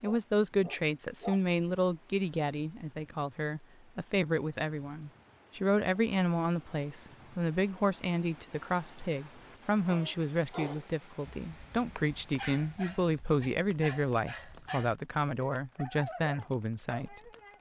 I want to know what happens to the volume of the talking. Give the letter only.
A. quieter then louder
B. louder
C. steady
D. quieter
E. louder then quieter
C.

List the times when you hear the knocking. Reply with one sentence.
You can't hear the knocking here.